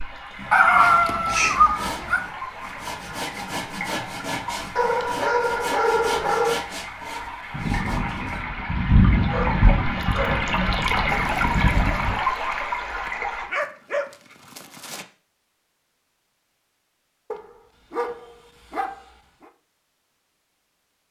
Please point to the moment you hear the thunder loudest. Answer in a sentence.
The loudest moment of the thunder is at 9 seconds.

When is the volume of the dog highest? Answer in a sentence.
The loudest moment of the dog is at 1 second.